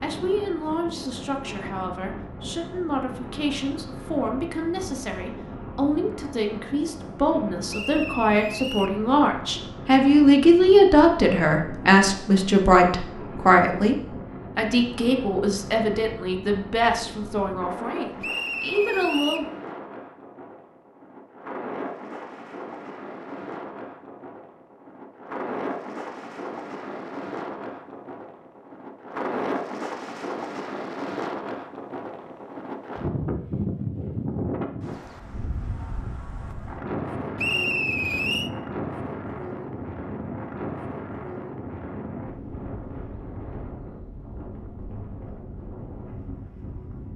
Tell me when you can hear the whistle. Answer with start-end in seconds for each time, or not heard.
7.7-9.0, 18.2-19.5, 37.4-38.5.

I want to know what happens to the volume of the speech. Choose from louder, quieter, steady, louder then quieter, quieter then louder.
louder then quieter.